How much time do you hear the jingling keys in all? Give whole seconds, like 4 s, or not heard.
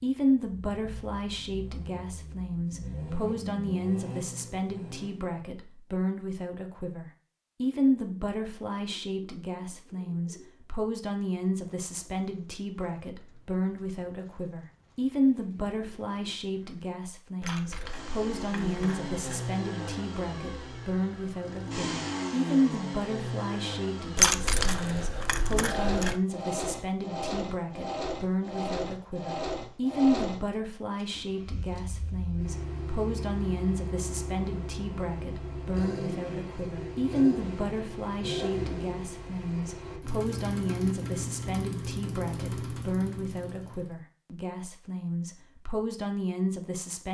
4 s.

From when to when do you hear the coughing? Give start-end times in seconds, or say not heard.
not heard.